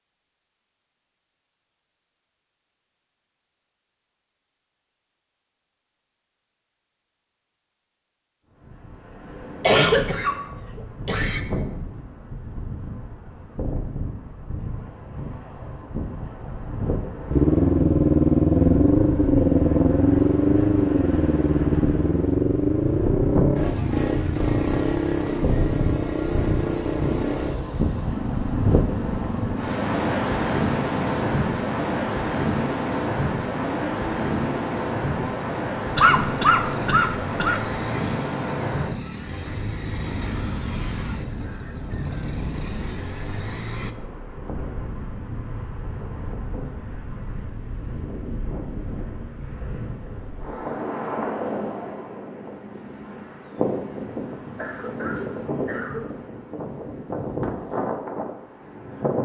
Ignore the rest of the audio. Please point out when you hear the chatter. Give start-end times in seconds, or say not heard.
not heard.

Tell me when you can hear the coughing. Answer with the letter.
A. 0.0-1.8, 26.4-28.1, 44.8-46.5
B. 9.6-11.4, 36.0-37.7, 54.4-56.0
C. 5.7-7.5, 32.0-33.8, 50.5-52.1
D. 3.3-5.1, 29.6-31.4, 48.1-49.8
B.